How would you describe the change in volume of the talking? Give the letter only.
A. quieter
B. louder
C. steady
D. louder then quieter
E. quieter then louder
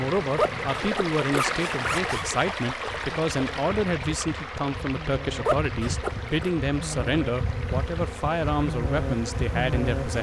C.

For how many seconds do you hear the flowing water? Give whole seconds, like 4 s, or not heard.
10 s.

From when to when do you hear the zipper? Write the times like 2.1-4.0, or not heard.
0.2-2.2, 5.2-6.5.